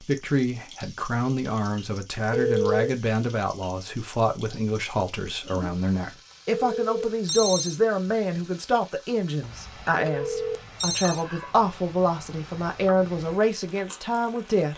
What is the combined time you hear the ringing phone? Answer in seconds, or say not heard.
3 s.